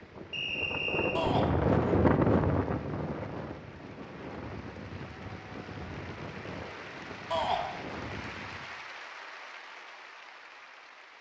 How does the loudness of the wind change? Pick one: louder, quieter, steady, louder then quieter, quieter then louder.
quieter.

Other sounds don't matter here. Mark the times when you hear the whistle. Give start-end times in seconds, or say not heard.
0.3-1.2.